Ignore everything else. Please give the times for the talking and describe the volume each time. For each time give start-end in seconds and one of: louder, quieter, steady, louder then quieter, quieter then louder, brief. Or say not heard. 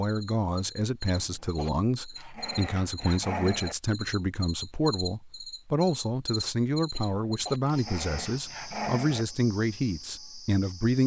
0.0-11.0 steady.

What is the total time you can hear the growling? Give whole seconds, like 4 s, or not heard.
3 s.